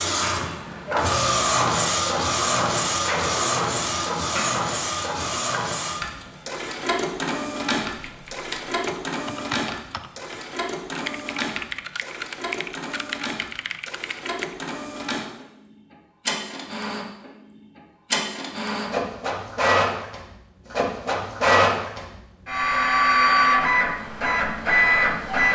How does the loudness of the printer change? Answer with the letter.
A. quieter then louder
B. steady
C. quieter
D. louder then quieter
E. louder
A.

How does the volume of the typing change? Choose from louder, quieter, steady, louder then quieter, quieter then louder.
steady.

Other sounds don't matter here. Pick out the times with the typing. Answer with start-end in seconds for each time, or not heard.
8.0-14.6.